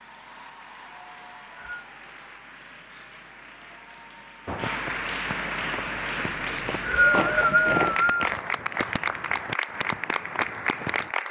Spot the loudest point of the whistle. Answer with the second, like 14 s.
7 s.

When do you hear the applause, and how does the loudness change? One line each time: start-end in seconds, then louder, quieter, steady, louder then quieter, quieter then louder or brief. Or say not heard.
0.0-11.2 louder.